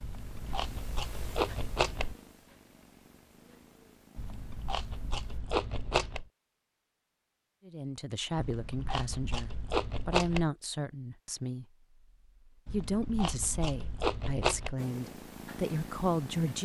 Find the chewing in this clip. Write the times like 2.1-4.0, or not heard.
0.0-2.1, 4.2-6.2, 8.3-10.5, 12.7-14.8.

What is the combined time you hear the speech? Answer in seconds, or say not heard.
8 s.